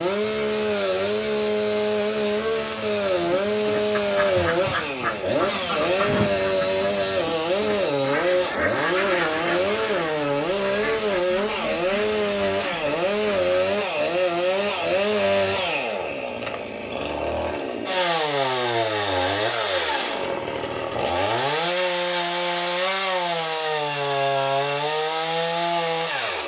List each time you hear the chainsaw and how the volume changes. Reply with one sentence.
The chainsaw can be heard from 0.0 to 26.4 s, at a steady volume.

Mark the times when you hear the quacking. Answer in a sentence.
You can hear the quacking from 3.0 to 13.6 s.